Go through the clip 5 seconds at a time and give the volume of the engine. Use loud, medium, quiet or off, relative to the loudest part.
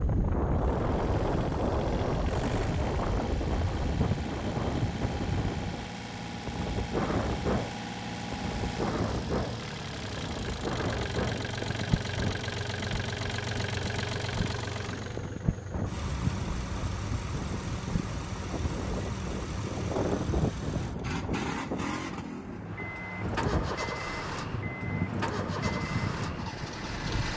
medium, loud, loud, loud, loud, loud.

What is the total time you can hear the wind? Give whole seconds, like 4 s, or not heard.
27 s.